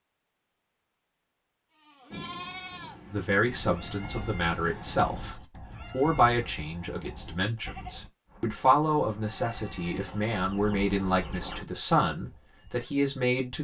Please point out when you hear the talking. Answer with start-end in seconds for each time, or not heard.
3.1-13.5.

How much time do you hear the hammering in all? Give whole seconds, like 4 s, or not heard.
not heard.